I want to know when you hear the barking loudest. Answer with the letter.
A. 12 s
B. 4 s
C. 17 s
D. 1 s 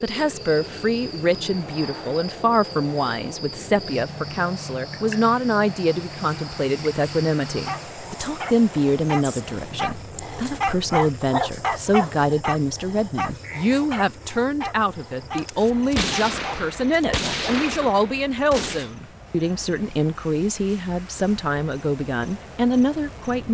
A.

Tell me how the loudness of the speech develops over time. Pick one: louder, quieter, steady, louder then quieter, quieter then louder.
steady.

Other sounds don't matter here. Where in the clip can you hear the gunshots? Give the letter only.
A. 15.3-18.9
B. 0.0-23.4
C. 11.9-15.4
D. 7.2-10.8
A.